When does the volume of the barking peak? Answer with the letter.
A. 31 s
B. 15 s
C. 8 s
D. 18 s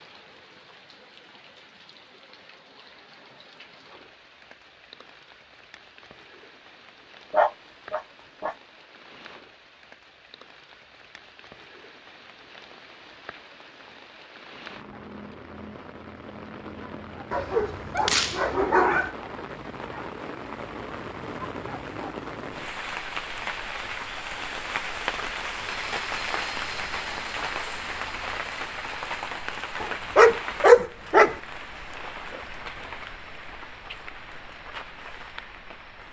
A.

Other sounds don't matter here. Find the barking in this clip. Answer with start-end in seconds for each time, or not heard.
7.3-8.6, 17.3-19.1, 29.8-31.4.